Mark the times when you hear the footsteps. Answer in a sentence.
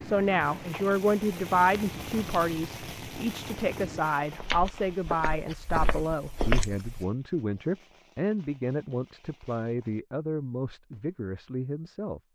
The footsteps can be heard from 0.0 to 7.0 s.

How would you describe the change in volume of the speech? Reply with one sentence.
The loudness of the speech goes down.